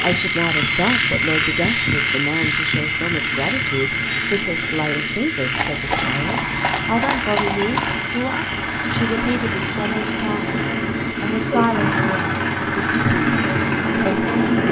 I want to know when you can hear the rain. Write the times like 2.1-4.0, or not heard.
not heard.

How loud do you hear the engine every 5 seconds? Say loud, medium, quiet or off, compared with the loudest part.
quiet, medium, loud.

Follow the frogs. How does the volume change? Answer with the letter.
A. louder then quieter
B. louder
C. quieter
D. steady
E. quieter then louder
C.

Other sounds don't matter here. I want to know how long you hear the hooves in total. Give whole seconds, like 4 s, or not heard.
6 s.